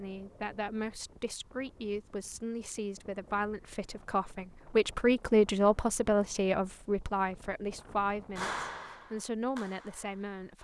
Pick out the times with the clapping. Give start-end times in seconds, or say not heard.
8.3-10.6.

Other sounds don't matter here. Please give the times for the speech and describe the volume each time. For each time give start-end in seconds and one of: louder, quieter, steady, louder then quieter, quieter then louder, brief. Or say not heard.
0.0-10.6 louder then quieter.